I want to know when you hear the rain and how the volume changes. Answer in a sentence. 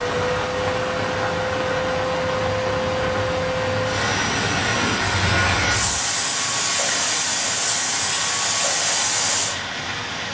The rain can be heard from 0.0 to 10.2 s, at a steady volume.